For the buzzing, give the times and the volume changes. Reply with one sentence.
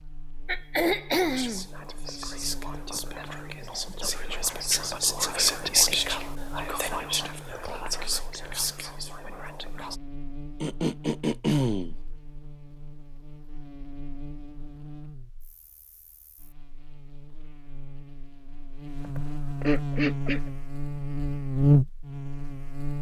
You can hear the buzzing from 0.0 to 22.9 s, getting louder.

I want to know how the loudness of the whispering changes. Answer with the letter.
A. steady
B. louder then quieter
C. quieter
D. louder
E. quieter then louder
B.